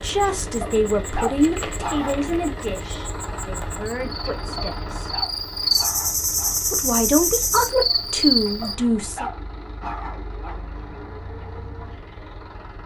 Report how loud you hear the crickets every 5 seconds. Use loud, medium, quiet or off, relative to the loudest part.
quiet, loud, off.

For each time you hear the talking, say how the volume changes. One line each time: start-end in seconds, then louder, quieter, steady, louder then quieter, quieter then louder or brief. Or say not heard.
0.0-5.1 quieter then louder
6.7-9.3 brief.